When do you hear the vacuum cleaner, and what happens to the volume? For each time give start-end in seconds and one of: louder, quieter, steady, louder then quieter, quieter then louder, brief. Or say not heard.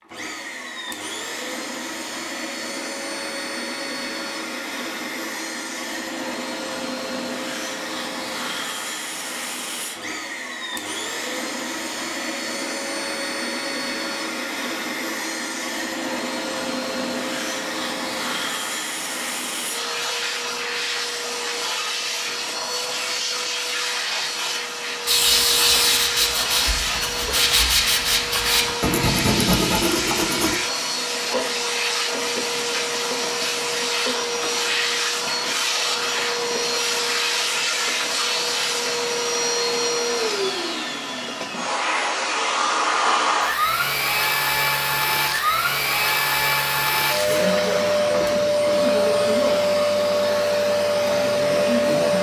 0.0-52.1 louder.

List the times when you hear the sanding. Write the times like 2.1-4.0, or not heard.
25.1-30.6.